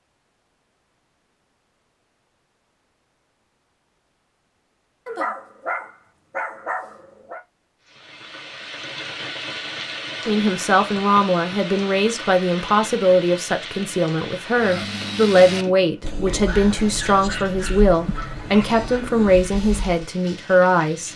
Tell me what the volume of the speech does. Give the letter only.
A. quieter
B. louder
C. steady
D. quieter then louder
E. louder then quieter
C.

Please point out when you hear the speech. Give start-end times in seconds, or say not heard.
10.2-21.1.